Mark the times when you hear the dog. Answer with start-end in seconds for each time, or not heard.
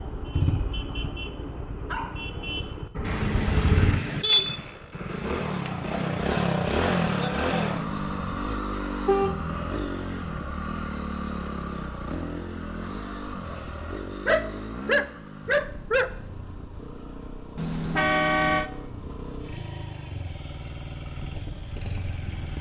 1.9-2.4, 14.2-16.1.